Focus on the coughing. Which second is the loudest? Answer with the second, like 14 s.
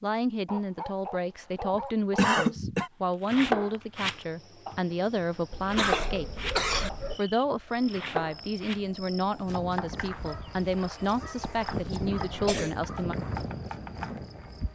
2 s.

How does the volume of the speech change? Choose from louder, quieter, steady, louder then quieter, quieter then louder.
steady.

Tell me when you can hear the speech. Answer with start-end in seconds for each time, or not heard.
0.0-6.5, 7.2-13.2.